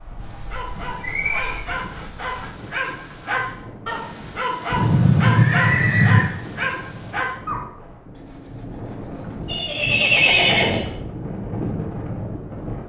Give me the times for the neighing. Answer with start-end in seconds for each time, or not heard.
0.2-1.6, 4.7-6.3, 9.4-10.8.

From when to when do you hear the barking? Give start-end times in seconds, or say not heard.
0.2-7.6.